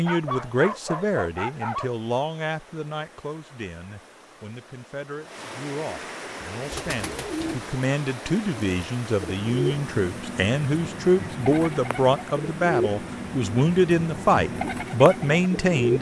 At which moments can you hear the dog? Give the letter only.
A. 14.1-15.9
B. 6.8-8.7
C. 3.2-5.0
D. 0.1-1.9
D.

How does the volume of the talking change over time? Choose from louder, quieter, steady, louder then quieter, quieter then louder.
quieter then louder.